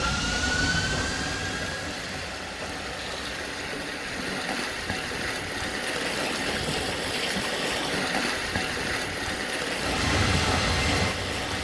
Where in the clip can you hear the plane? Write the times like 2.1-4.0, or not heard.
0.0-3.5, 9.8-11.5.